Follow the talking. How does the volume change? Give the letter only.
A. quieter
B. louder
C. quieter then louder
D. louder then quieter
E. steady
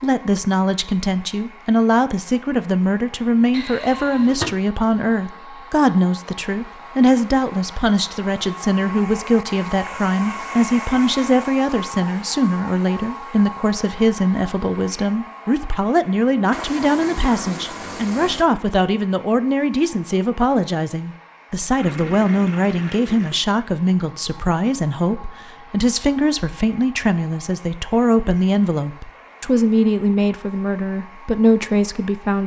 E.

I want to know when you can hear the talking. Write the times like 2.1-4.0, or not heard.
0.0-32.4.